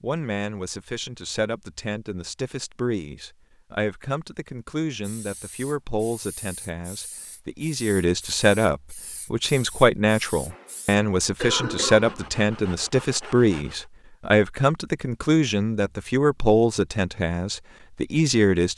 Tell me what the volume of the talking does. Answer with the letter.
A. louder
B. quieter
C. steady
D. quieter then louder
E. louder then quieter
A.